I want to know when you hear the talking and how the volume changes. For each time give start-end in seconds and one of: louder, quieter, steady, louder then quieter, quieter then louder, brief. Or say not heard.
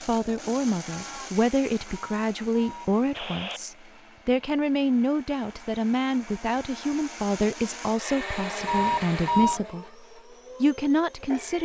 0.0-9.8 steady
10.6-11.6 brief.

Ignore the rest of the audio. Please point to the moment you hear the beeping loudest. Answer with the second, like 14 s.
9 s.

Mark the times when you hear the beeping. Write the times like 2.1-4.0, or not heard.
1.9-3.6, 8.7-9.6.